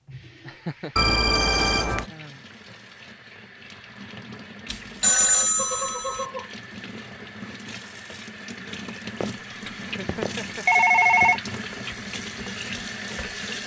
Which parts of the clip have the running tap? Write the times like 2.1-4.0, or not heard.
0.0-13.6.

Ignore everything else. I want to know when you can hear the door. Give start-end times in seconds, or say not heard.
not heard.